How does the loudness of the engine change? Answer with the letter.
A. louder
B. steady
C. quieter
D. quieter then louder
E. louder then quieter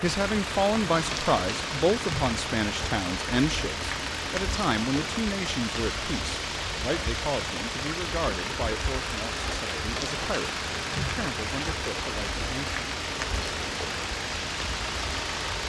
B.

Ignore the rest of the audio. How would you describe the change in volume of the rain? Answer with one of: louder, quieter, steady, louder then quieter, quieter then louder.
steady.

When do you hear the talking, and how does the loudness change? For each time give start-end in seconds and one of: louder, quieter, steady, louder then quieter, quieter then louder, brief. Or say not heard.
0.0-12.8 quieter.